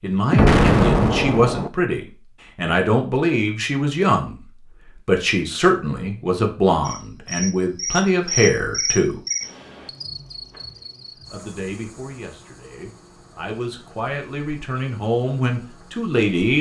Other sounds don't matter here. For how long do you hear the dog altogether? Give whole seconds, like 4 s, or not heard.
not heard.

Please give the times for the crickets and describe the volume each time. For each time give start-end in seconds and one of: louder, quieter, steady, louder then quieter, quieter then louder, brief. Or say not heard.
6.8-16.3 quieter.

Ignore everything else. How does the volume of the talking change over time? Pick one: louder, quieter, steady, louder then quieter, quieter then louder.
quieter then louder.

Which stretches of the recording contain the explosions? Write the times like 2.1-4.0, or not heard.
0.3-1.7.